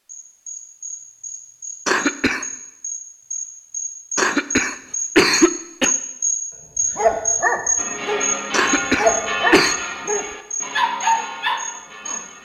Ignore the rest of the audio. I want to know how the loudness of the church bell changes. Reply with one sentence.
The volume of the church bell goes down.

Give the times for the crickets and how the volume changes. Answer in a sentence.
You can hear the crickets from 0.1 to 12.2 s, getting louder then quieter.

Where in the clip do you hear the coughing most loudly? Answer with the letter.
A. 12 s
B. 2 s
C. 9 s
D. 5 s
D.